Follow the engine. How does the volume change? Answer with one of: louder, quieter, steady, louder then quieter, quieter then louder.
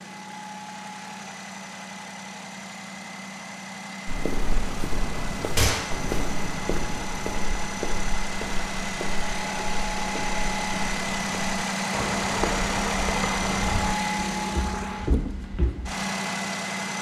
louder.